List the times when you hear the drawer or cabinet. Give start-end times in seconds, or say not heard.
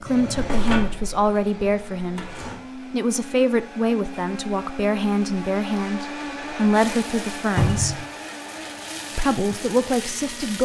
0.1-2.5, 7.5-8.0.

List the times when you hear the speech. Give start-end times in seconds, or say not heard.
0.0-8.1, 9.2-10.6.